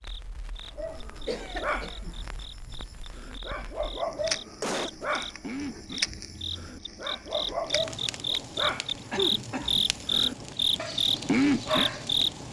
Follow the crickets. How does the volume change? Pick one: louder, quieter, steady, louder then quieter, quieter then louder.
louder.